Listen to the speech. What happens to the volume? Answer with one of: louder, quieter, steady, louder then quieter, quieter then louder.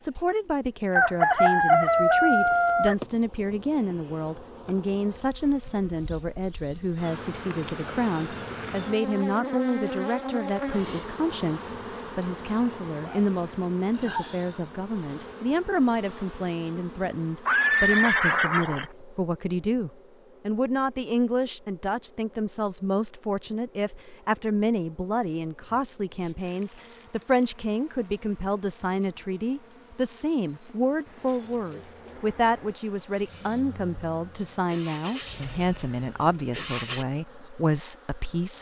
steady.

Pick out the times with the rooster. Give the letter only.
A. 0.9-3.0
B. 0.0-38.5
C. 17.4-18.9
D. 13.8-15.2
A.